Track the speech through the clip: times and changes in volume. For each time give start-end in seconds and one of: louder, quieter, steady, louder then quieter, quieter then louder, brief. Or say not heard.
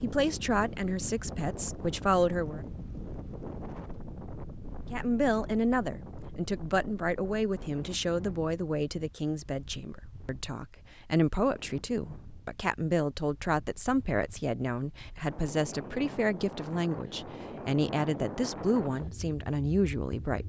0.0-2.6 brief
4.9-20.4 steady.